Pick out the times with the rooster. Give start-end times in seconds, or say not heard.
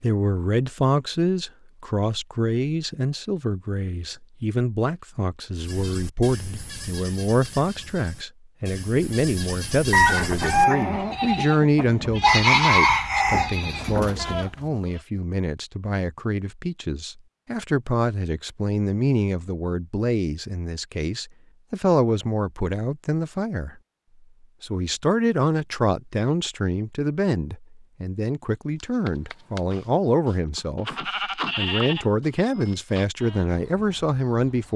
9.9-14.4.